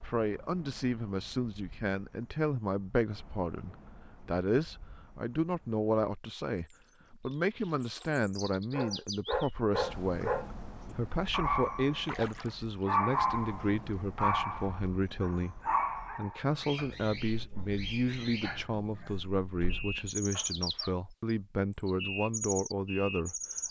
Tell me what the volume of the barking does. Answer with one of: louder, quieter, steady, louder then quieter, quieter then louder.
quieter.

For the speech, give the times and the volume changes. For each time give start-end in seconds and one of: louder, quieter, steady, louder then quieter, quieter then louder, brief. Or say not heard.
0.0-23.4 steady.